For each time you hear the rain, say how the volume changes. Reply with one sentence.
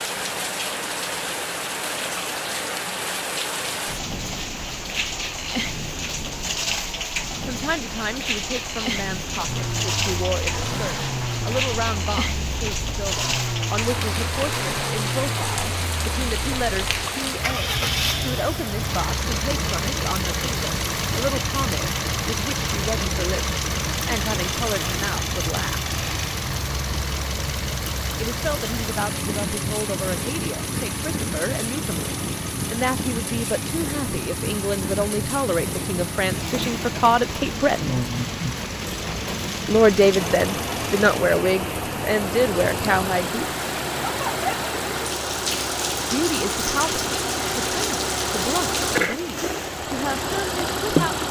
The rain can be heard from 0.0 to 51.2 s, at a steady volume.